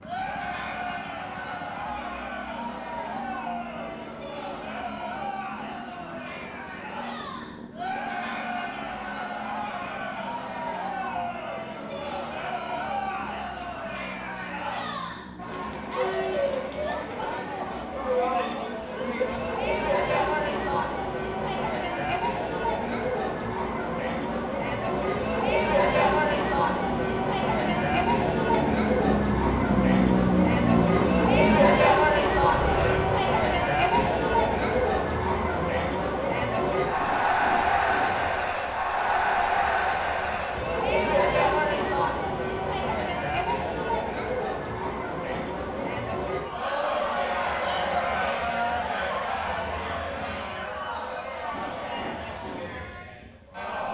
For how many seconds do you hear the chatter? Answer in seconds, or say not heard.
54 s.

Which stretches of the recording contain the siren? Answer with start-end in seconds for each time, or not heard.
not heard.